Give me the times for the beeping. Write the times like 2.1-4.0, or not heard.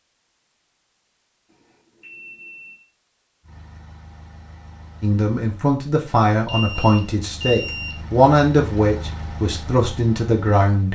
1.5-2.9, 6.5-8.1.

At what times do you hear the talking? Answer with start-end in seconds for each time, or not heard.
5.0-10.9.